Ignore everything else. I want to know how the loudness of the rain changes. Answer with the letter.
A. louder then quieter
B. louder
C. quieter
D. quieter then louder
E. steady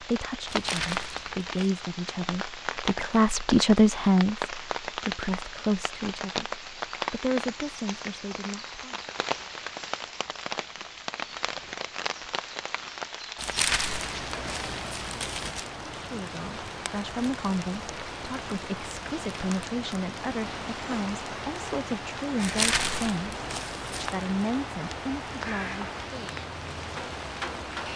E.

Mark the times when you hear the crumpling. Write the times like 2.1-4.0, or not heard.
0.5-1.4, 13.3-15.7, 22.4-24.1.